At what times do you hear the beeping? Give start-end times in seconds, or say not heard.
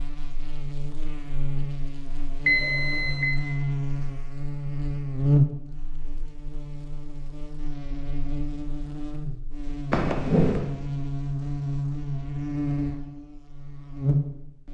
2.5-3.2, 9.9-10.6.